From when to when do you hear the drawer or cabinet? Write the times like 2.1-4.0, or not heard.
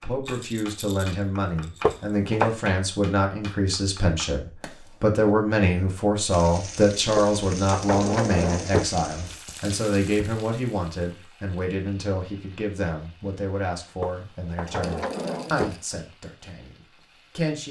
1.8-2.5, 7.2-8.9, 14.0-15.8.